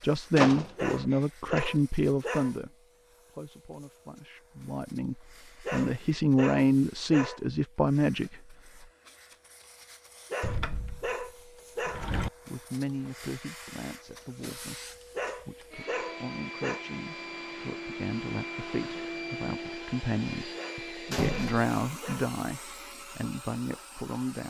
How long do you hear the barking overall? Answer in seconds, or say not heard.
9 s.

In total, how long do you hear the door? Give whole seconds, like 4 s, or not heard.
4 s.